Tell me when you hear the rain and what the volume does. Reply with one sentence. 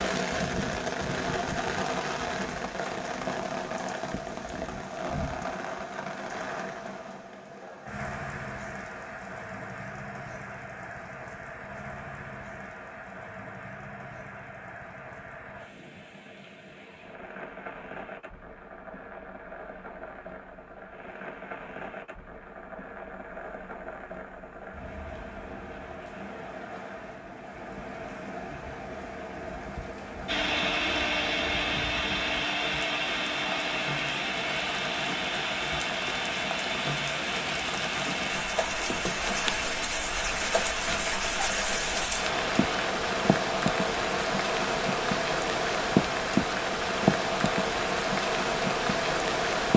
You can hear the rain from 0.0 to 49.7 s, getting quieter then louder.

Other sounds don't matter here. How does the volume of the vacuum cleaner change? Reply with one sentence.
The volume of the vacuum cleaner goes down.